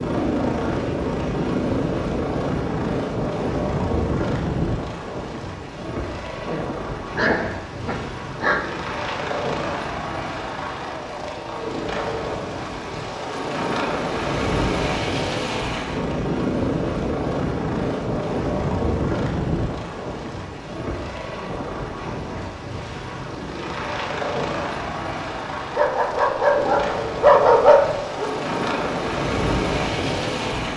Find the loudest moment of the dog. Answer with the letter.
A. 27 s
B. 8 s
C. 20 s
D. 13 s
A.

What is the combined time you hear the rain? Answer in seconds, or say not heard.
not heard.